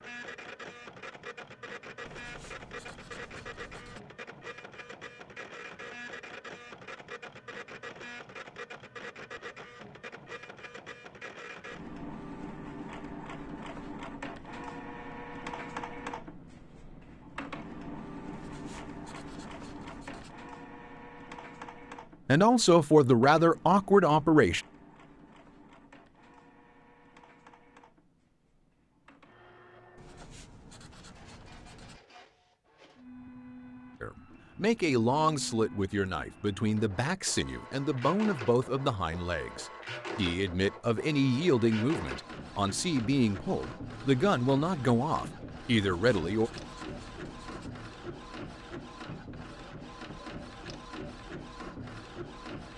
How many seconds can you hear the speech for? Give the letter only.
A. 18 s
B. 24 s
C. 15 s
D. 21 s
C.